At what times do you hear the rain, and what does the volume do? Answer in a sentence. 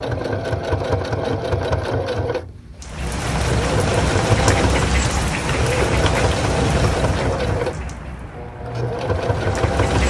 You can hear the rain from 2.8 to 10.0 s, getting quieter.